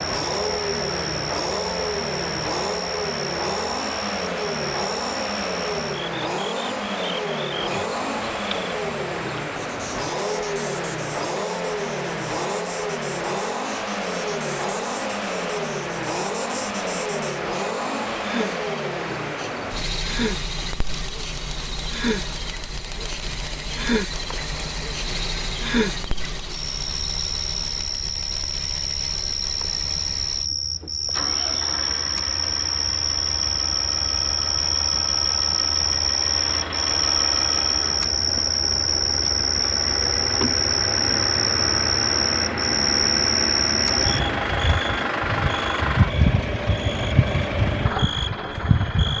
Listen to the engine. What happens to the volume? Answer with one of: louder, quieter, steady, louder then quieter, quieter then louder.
quieter then louder.